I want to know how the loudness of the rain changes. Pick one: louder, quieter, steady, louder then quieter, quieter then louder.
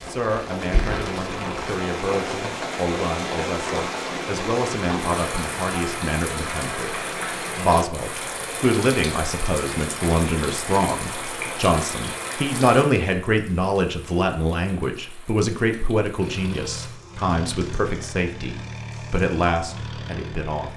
quieter.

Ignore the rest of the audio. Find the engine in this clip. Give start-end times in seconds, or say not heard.
16.1-20.7.